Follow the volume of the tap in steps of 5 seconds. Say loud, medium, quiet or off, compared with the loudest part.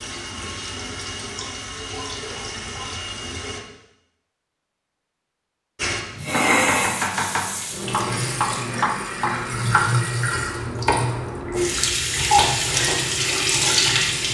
medium, loud, loud.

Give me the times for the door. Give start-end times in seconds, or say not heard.
not heard.